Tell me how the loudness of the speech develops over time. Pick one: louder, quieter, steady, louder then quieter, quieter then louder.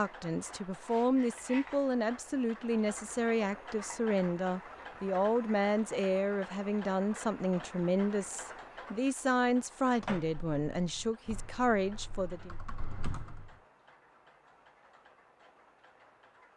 steady.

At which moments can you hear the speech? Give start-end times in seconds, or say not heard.
0.0-12.6.